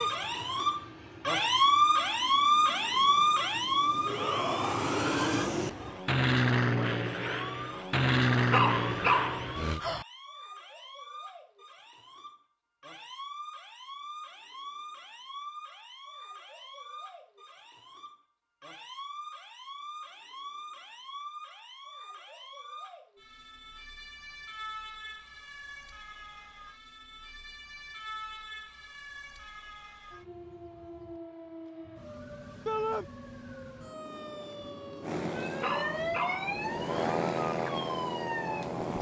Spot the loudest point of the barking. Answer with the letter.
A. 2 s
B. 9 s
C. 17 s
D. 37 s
B.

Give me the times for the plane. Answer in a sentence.
You can hear the plane from 0.0 to 9.8 s and from 35.0 to 38.9 s.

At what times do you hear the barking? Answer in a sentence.
The barking can be heard from 8.5 to 10.1 s and from 35.6 to 37.1 s.